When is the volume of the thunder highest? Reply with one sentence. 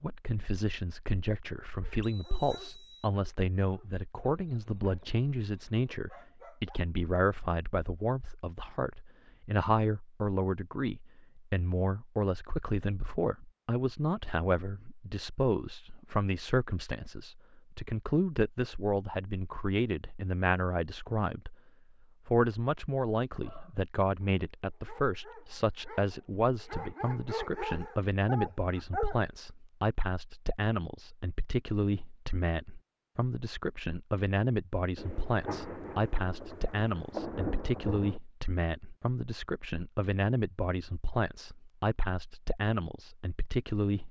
The volume of the thunder peaks at 37 seconds.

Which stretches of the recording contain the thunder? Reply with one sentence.
You can hear the thunder from 35.0 to 38.2 s.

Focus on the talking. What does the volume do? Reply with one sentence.
The volume of the talking stays about the same.